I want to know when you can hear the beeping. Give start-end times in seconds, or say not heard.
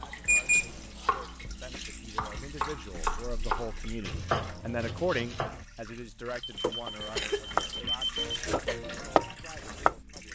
0.2-0.8, 6.4-8.2.